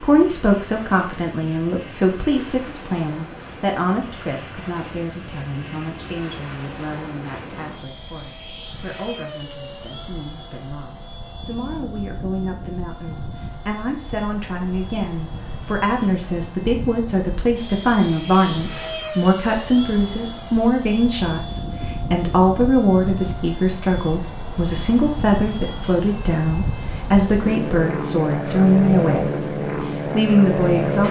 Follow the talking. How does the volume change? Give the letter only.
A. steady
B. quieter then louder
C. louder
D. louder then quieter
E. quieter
B.